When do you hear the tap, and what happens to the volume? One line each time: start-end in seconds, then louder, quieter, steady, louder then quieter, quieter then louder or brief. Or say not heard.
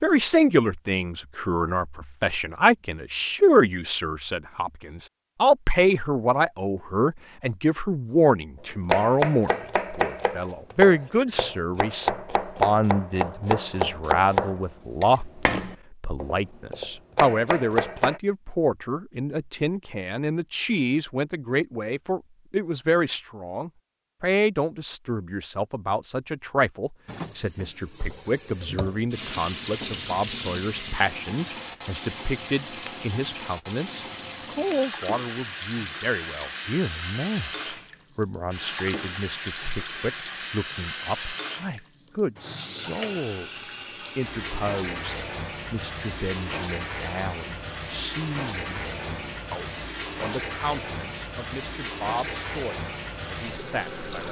27.1-54.2 steady.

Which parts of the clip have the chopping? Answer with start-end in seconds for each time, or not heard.
8.8-18.2.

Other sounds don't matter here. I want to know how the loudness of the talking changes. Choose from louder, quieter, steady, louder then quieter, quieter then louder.
quieter.